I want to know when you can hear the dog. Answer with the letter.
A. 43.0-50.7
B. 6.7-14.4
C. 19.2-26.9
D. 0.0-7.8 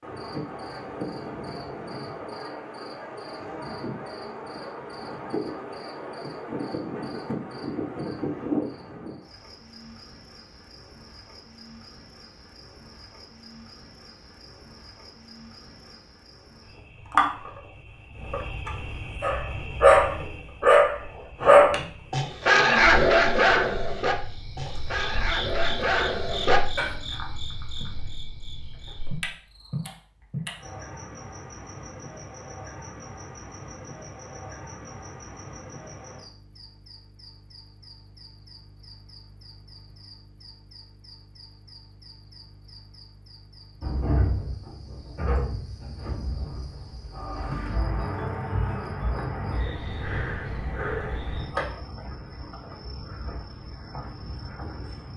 C.